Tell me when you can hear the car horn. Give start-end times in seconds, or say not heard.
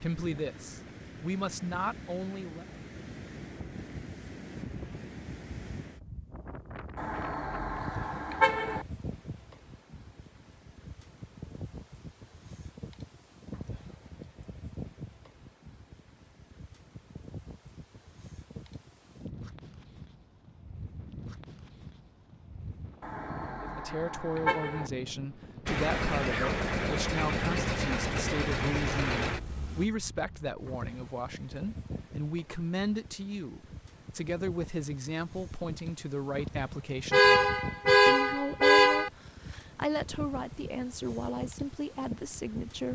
7.0-8.8, 23.0-24.9, 37.1-39.1.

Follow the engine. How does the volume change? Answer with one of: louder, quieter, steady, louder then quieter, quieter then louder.
steady.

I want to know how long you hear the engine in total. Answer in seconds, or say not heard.
4 s.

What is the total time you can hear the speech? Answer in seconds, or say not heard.
22 s.